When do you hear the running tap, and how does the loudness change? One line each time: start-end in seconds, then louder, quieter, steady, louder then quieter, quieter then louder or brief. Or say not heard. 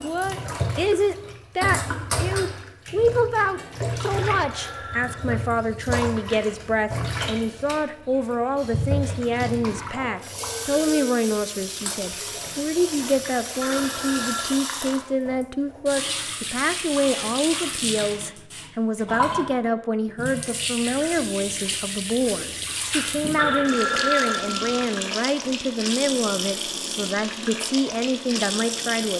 0.0-29.1 steady.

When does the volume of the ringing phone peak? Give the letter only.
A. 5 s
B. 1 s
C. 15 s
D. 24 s
D.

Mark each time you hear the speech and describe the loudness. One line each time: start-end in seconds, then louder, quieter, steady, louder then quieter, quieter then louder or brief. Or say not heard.
0.0-29.1 steady.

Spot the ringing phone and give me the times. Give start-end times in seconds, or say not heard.
4.3-5.4, 13.6-14.5, 23.4-24.9.